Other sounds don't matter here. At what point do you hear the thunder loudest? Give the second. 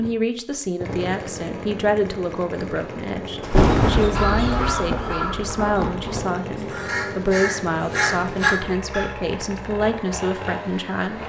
4 s.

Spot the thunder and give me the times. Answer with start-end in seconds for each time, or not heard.
3.4-6.3.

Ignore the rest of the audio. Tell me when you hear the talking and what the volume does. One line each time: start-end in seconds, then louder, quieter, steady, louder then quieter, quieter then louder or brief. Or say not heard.
0.0-11.2 steady.